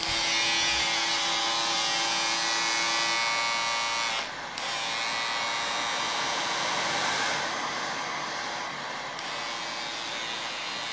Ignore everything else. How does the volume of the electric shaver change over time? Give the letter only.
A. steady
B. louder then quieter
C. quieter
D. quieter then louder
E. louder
C.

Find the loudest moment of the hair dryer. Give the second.
7 s.